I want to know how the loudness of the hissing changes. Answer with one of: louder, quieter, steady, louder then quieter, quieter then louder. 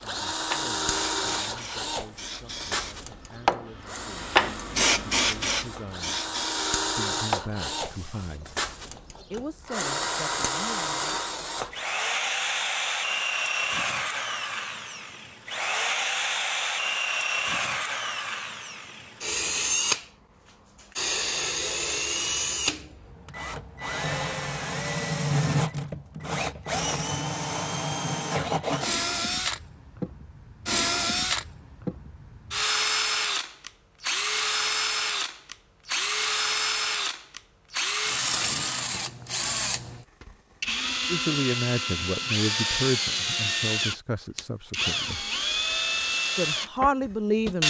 louder then quieter.